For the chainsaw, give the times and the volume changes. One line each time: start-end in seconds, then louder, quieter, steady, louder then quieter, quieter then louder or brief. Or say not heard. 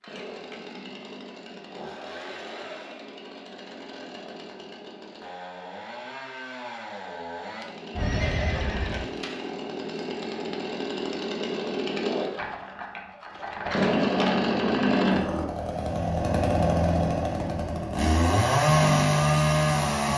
0.0-20.1 louder.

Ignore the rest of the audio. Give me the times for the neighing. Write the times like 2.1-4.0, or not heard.
8.0-9.0.